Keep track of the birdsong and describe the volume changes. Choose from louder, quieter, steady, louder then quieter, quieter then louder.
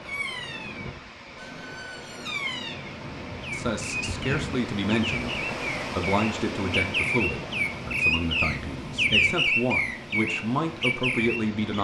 louder.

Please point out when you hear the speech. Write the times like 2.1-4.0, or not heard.
3.5-11.7.